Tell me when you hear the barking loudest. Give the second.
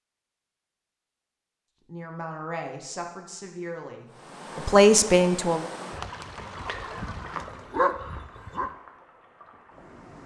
8 s.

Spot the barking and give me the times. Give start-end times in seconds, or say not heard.
5.9-8.7.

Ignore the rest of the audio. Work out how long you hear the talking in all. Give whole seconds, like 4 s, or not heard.
4 s.